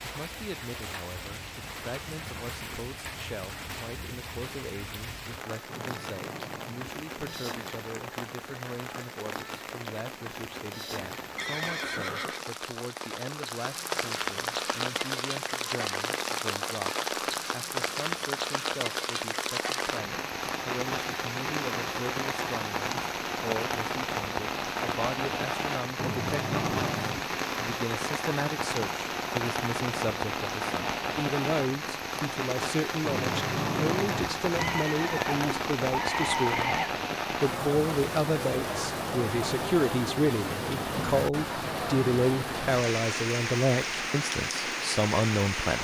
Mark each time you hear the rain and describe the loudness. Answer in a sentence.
The rain can be heard from 0.0 to 45.7 s, getting louder.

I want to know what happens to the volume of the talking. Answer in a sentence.
The loudness of the talking goes up.